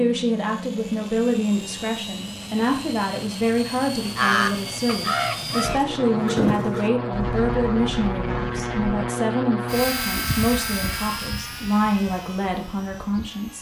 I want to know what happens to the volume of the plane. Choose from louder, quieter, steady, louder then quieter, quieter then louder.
louder then quieter.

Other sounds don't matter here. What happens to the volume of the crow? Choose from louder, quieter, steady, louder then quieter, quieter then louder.
quieter.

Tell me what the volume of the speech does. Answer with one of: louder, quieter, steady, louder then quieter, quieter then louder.
steady.